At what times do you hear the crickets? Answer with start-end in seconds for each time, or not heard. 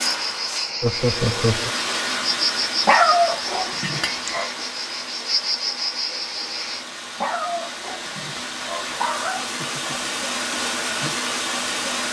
0.0-6.8.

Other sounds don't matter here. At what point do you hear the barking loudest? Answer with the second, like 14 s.
3 s.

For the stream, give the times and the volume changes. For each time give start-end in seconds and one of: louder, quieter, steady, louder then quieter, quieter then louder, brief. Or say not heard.
0.0-12.0 quieter then louder.